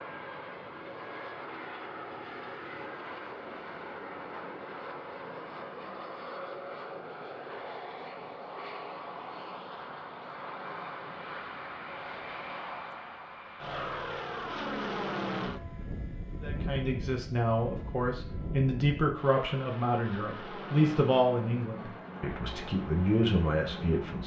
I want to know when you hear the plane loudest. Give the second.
15 s.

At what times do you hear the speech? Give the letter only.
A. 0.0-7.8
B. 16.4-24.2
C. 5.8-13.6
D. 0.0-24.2
B.